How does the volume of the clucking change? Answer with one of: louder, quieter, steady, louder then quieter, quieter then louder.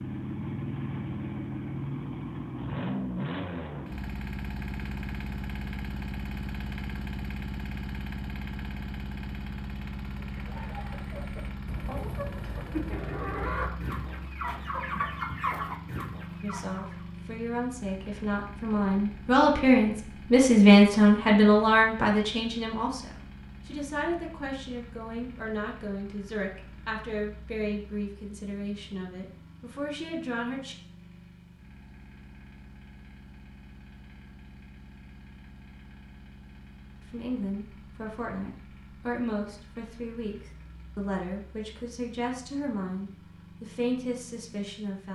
louder.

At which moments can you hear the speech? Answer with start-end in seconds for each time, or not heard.
16.4-30.8, 37.0-45.0.